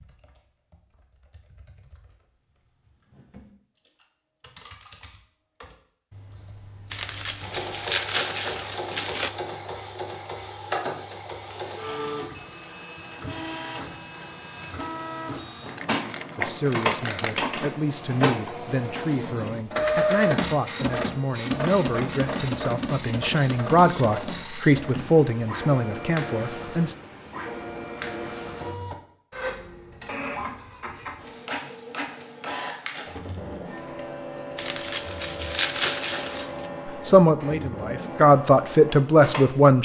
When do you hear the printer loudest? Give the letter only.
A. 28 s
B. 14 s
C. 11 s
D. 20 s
D.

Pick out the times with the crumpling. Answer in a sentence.
The crumpling can be heard from 6.9 to 9.3 s, from 15.7 to 17.6 s and from 34.5 to 36.7 s.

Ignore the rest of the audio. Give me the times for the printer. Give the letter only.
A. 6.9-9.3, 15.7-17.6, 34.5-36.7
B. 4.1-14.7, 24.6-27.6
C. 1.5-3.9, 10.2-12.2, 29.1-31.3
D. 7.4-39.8
D.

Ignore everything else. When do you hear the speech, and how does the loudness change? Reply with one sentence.
The speech can be heard from 16.4 to 26.9 s, getting louder; and briefly from 36.9 to 39.8 s.